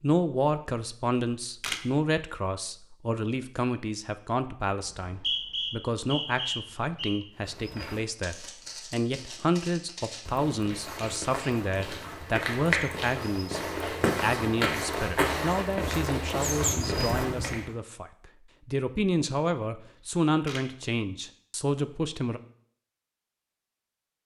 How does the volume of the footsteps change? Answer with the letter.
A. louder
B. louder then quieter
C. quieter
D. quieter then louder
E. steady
A.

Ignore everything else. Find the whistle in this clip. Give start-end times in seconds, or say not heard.
4.8-7.2.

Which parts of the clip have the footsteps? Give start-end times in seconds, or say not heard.
7.3-17.7.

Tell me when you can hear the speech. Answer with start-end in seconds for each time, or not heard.
0.0-22.4.